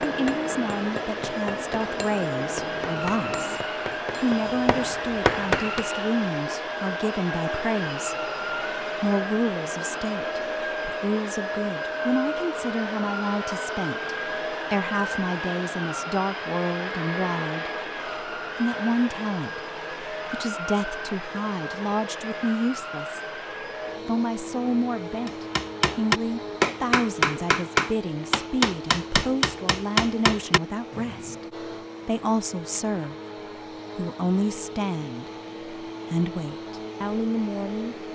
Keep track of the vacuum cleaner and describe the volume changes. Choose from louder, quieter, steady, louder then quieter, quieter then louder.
quieter.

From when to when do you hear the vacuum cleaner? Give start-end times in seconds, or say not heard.
0.0-38.1.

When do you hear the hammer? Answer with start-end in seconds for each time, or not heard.
0.0-5.8, 25.2-31.4.